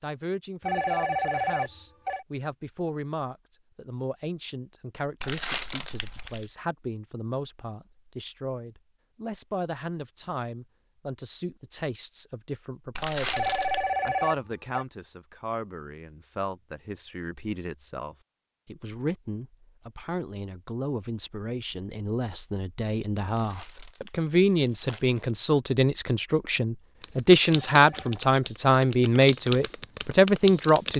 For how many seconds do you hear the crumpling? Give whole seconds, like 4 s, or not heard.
4 s.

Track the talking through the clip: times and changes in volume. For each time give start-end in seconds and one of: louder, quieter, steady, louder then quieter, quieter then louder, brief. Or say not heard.
0.0-30.9 louder.